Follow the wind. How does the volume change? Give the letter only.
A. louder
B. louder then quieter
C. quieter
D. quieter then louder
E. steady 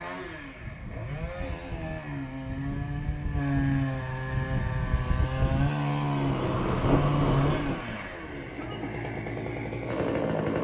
A.